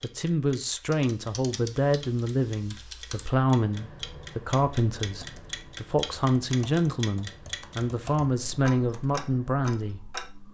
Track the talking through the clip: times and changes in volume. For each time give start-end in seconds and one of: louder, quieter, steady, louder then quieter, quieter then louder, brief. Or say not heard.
0.0-10.1 steady.